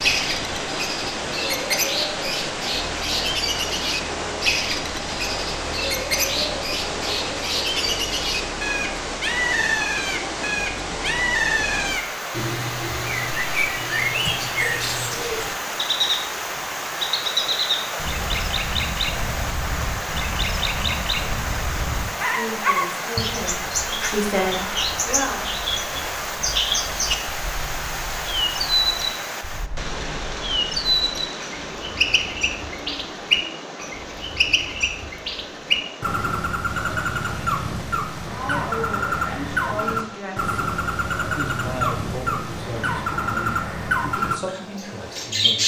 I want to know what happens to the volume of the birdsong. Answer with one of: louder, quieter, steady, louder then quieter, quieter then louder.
steady.